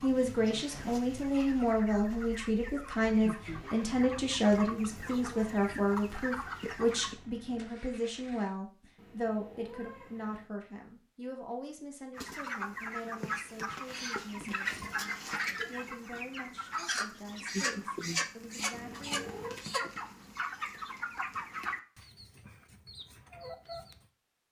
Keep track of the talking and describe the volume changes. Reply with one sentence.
The loudness of the talking goes down.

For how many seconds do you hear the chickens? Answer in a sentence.
You can hear the chickens for 19 seconds altogether.